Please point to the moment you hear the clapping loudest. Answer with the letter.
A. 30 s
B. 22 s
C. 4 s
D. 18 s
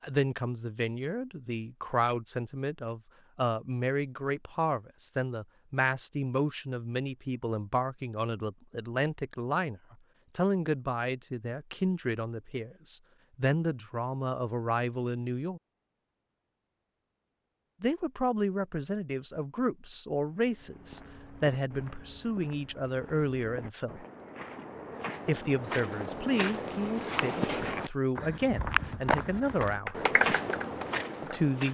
A.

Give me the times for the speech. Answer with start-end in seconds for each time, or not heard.
0.0-15.6, 17.8-24.1, 25.2-30.1, 31.2-31.7.